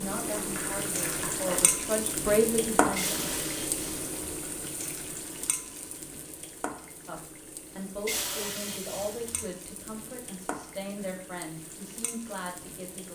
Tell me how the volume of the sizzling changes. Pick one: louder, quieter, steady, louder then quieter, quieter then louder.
quieter.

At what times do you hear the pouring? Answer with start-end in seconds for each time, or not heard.
3.0-4.2, 8.1-9.4.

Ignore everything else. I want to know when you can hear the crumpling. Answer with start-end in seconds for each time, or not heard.
0.2-1.8.